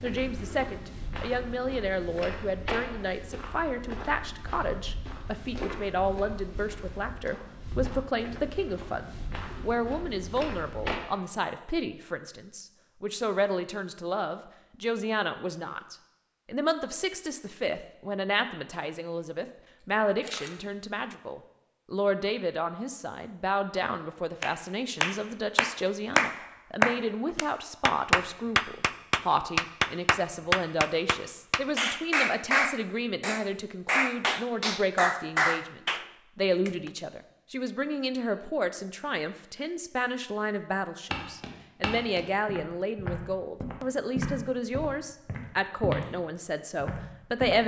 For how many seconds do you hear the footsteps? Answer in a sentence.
The footsteps can be heard for 17 seconds in total.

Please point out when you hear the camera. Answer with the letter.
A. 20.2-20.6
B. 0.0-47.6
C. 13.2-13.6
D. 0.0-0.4
A.